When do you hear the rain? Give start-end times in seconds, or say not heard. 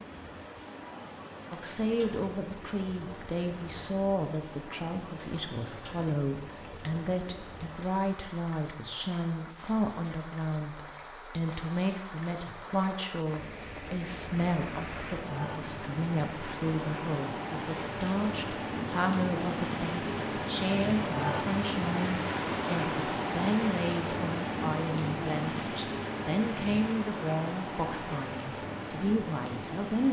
0.0-30.0.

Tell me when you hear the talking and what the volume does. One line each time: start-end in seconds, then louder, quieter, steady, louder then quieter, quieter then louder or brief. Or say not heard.
1.5-30.0 steady.